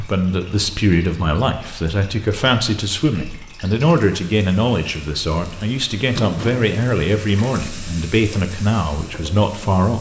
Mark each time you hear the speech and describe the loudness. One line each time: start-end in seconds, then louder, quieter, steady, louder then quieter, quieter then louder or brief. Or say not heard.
0.0-9.9 steady.